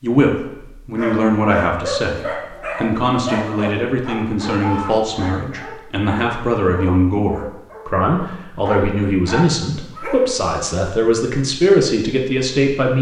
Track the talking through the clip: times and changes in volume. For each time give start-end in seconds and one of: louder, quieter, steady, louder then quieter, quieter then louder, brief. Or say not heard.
0.0-12.9 steady.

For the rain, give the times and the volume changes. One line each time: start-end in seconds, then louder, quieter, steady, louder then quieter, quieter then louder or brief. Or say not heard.
not heard.